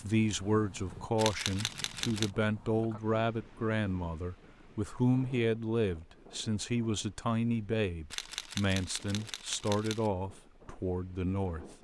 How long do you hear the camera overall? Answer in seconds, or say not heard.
3 s.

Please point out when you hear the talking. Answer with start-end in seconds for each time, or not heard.
0.0-11.7.